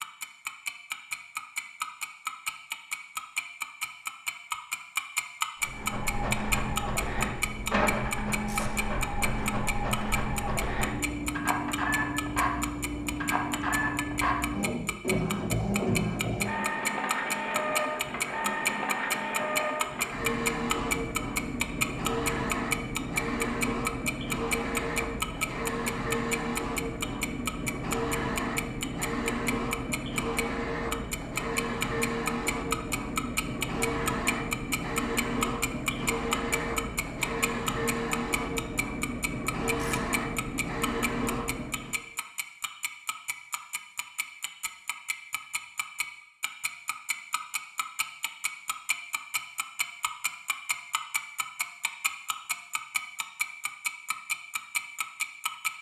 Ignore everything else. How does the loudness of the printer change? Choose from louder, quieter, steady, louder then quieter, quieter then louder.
steady.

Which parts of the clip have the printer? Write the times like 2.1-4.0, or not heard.
5.6-42.0.